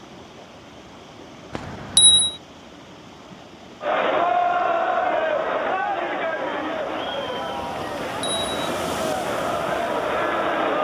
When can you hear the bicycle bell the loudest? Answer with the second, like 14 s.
2 s.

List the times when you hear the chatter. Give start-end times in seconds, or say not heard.
3.8-10.8.